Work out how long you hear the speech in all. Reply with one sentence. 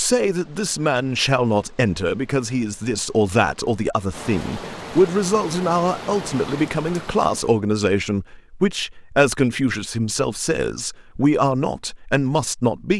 The speech can be heard for 13 seconds in total.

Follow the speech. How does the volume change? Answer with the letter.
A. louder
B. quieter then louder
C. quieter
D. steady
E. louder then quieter
D.